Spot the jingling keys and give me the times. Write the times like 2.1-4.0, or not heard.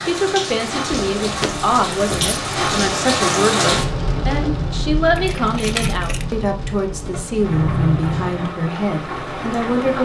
0.9-3.0, 5.2-6.2.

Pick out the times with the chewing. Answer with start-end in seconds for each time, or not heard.
not heard.